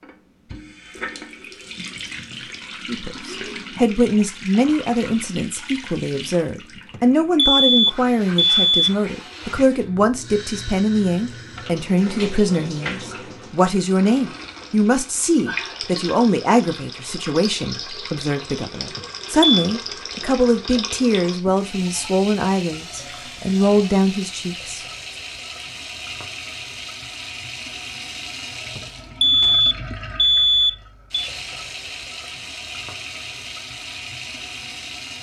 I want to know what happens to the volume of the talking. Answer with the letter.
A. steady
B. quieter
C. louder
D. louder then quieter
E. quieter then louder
A.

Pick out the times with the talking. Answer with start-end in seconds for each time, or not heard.
2.9-24.9.